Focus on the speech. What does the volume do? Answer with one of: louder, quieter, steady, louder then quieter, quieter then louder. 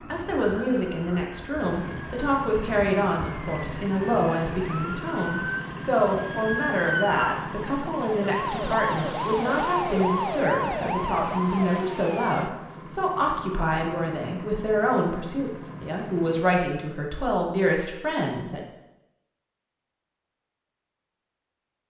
steady.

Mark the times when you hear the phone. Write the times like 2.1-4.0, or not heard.
not heard.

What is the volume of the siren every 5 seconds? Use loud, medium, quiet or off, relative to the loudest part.
medium, loud, loud, off, off.